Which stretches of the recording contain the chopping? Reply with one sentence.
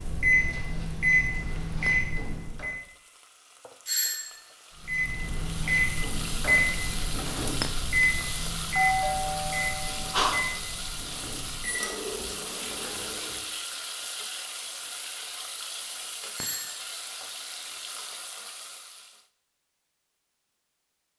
You can't hear the chopping here.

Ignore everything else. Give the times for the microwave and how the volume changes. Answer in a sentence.
The microwave can be heard briefly from 0.0 to 2.8 s; and from 4.8 to 13.6 s, getting quieter.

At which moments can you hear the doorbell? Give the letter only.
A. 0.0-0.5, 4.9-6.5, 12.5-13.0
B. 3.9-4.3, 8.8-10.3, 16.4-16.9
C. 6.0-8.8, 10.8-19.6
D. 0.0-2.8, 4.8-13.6
B.